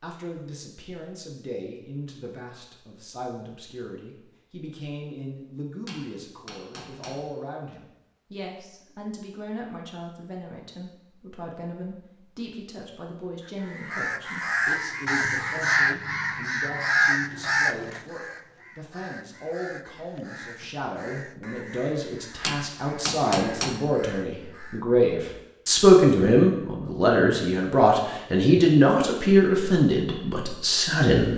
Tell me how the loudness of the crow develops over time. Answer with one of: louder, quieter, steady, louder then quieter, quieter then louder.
quieter.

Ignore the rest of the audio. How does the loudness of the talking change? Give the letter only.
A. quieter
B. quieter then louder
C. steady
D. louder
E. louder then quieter
D.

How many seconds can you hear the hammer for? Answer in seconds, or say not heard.
3 s.